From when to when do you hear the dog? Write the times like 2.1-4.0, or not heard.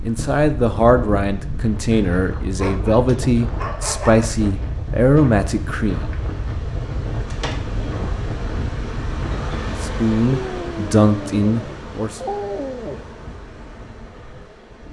2.5-4.3, 10.2-13.1.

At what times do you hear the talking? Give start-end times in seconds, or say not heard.
0.0-6.1, 9.7-12.2.